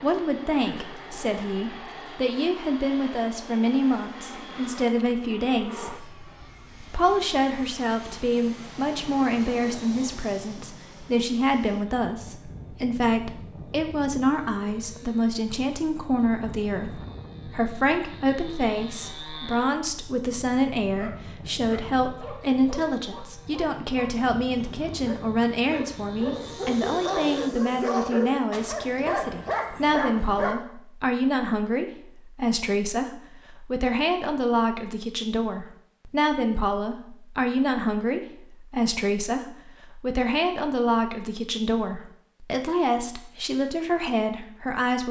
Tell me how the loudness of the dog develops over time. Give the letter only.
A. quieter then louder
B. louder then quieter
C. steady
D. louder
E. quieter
D.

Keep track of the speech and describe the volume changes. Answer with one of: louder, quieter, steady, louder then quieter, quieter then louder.
steady.